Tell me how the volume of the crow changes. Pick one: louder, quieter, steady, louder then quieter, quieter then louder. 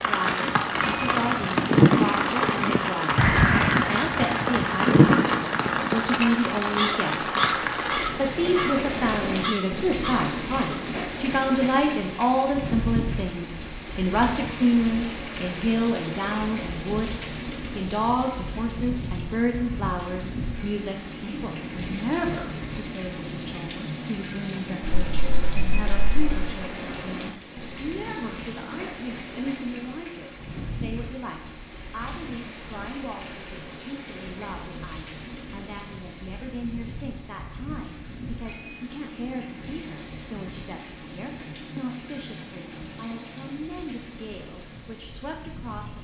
quieter.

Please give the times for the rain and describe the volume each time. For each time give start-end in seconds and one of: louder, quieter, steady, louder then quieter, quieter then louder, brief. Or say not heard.
0.0-45.9 quieter.